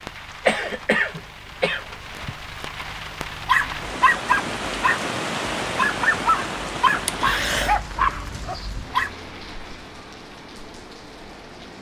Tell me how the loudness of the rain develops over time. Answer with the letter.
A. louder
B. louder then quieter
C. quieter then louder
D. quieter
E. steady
B.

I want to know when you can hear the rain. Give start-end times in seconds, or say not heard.
0.0-11.7.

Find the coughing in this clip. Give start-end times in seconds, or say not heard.
0.5-2.4, 7.0-7.8.